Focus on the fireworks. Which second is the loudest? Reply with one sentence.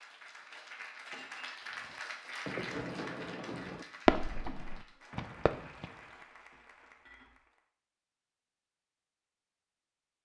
The volume of the fireworks peaks at 4 seconds.